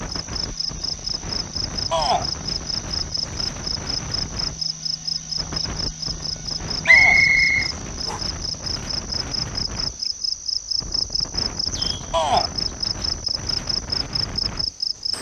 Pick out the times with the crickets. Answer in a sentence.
The crickets can be heard from 0.0 to 15.1 s.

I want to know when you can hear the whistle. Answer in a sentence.
You can hear the whistle from 6.8 to 8.2 s.